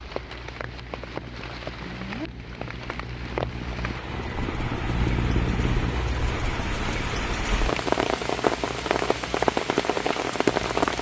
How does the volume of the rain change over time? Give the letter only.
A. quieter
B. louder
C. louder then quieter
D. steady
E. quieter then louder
B.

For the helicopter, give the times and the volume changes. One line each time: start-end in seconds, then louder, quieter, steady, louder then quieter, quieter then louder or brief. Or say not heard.
0.0-10.9 louder then quieter.